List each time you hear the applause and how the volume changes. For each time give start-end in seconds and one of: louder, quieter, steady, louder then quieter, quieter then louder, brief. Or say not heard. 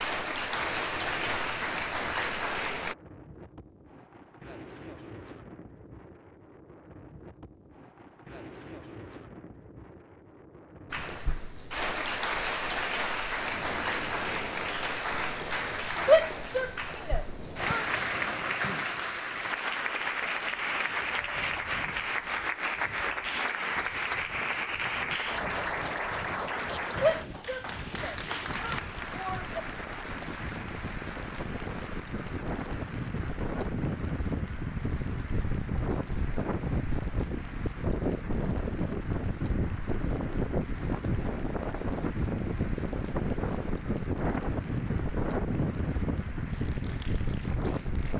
0.0-3.0 brief
10.9-48.1 quieter.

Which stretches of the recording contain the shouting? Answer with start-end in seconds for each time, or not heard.
16.1-17.9, 27.0-29.5.